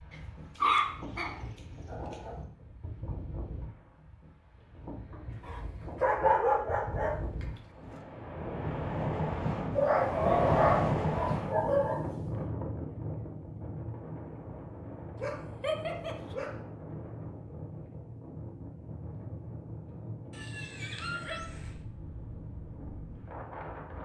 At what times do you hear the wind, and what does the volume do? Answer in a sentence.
The wind can be heard from 0.0 to 23.9 s, getting louder then quieter.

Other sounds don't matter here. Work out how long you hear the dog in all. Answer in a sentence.
You can hear the dog for 10 seconds altogether.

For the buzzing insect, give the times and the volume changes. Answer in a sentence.
The buzzing insect can't be heard in this clip.